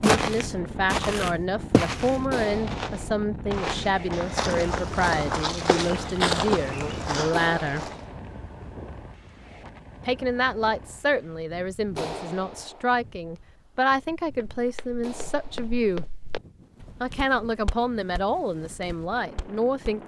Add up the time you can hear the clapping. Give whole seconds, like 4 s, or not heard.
4 s.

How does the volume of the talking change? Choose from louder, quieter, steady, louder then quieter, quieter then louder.
steady.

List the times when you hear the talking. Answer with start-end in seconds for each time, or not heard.
0.0-7.8, 10.1-16.1, 17.0-20.0.